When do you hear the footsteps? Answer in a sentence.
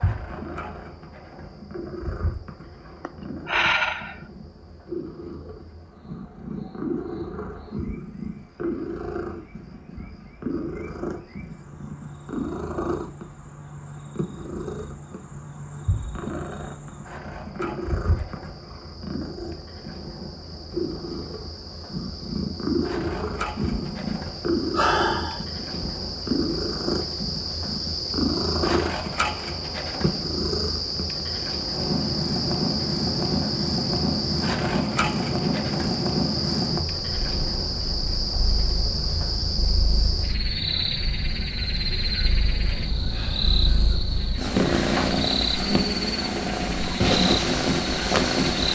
You can't hear the footsteps here.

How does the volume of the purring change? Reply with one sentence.
The loudness of the purring goes up.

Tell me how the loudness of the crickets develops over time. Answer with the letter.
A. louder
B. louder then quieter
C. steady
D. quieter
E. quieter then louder
A.